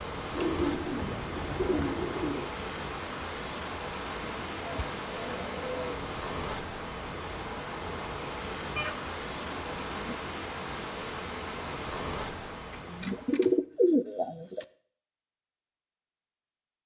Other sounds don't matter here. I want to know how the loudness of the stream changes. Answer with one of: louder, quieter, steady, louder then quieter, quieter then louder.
steady.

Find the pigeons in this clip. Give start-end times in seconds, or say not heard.
0.3-2.5, 4.2-6.0, 8.8-10.2, 12.7-14.7.